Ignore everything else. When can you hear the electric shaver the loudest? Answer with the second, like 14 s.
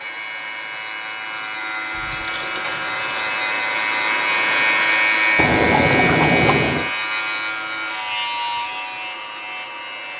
5 s.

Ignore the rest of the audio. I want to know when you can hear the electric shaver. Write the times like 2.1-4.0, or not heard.
0.0-10.1.